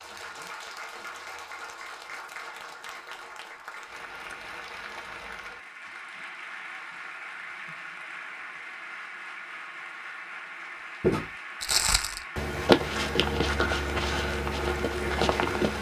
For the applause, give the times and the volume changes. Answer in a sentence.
The applause can be heard from 0.0 to 15.7 s, at a steady volume.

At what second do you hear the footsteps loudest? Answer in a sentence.
The volume of the footsteps peaks at 13 seconds.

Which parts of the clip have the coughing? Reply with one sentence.
You can't hear the coughing here.